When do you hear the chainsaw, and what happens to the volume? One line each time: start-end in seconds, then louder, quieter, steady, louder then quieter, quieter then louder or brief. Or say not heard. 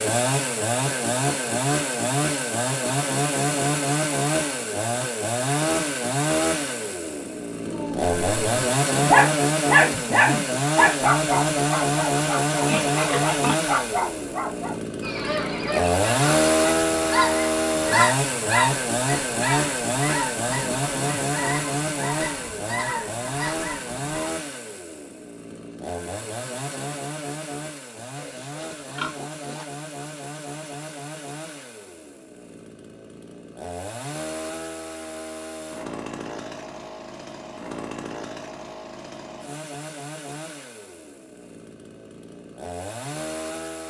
0.0-43.8 quieter.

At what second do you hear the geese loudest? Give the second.
18 s.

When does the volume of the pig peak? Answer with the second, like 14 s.
13 s.